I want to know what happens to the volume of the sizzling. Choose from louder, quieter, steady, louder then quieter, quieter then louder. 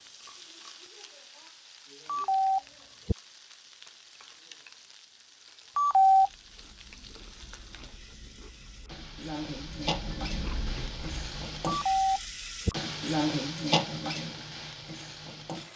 louder.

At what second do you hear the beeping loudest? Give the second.
6 s.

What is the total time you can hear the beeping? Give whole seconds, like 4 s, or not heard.
3 s.